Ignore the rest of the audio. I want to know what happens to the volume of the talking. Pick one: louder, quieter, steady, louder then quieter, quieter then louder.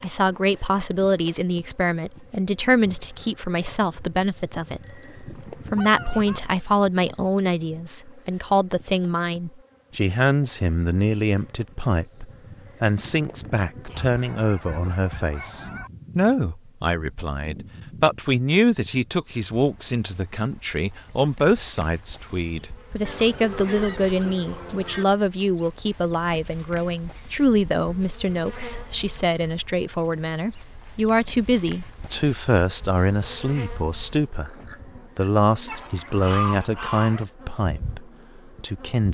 steady.